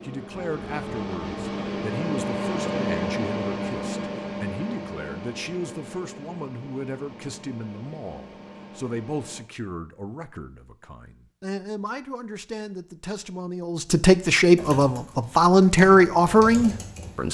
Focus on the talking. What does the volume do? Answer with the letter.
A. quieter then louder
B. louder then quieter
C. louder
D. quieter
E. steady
C.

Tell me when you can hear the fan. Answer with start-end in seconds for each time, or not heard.
0.0-9.4.